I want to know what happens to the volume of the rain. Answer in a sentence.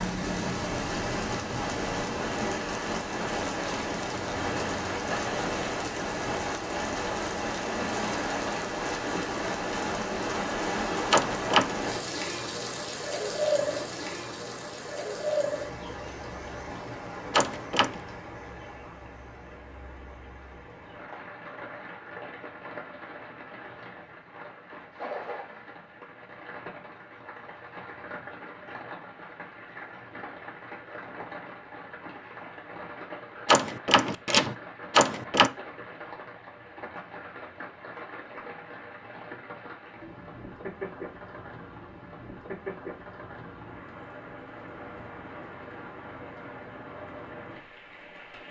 The loudness of the rain goes down.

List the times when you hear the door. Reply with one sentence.
The door can be heard from 11.1 to 11.8 s, from 17.3 to 18.0 s and from 33.5 to 35.5 s.